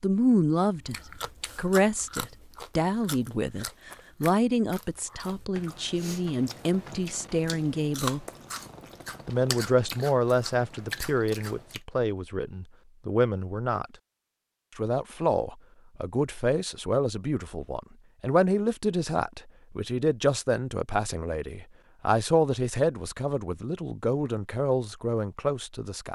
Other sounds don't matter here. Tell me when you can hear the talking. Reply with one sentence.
You can hear the talking from 0.0 to 0.9 s, from 1.6 to 8.2 s, from 9.2 to 13.8 s and from 14.8 to 26.0 s.